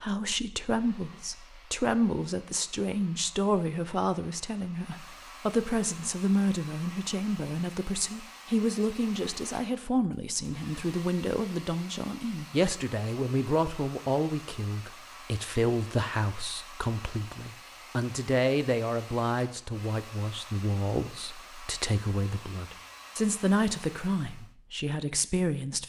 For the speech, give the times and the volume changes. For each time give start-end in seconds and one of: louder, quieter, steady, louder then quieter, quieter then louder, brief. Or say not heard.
0.0-25.8 steady.